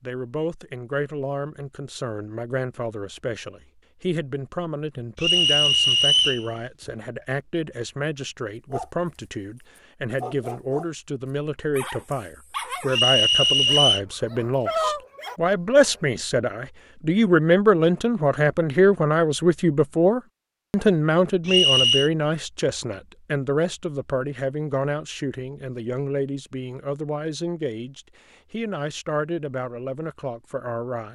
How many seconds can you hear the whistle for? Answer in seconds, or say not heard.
3 s.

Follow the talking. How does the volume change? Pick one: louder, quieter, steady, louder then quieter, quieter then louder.
louder then quieter.